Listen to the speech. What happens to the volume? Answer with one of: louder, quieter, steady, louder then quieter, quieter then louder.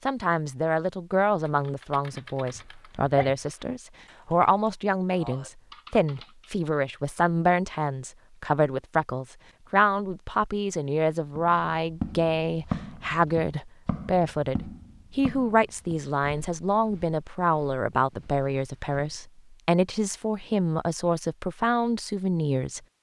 steady.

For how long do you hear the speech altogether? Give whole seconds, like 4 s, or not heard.
23 s.